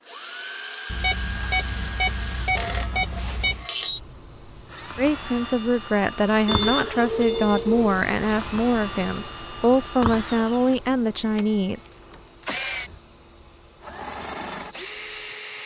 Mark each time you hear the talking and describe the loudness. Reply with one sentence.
The talking can be heard from 5.0 to 11.8 s, at a steady volume.